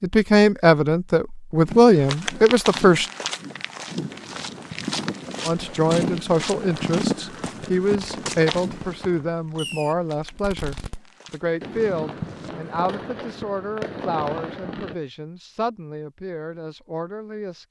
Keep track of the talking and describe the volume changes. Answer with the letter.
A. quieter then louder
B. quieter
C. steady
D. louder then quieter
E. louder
B.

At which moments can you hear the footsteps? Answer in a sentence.
You can hear the footsteps from 1.6 to 12.8 s.